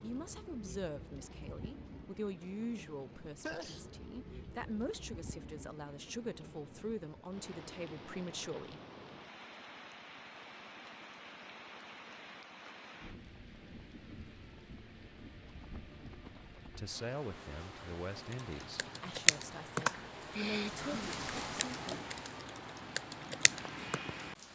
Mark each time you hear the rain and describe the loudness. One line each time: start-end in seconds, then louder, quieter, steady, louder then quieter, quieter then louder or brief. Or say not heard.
0.0-24.5 louder.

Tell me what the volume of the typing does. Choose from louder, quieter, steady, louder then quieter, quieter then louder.
quieter then louder.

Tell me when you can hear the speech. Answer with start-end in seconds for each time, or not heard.
0.0-8.8, 16.8-21.9.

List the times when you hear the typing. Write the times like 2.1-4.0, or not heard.
18.3-24.0.